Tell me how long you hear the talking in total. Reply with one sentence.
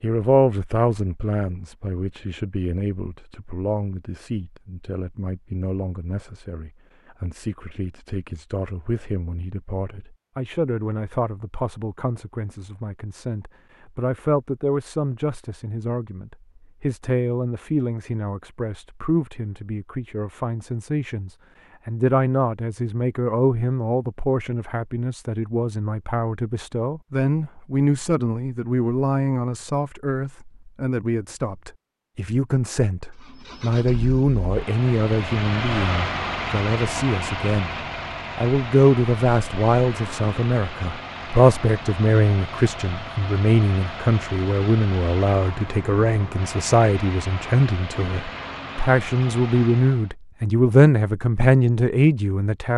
The talking can be heard for 52 seconds in total.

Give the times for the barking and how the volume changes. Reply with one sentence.
You can't hear the barking here.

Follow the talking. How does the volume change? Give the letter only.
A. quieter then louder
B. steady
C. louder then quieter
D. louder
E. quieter
D.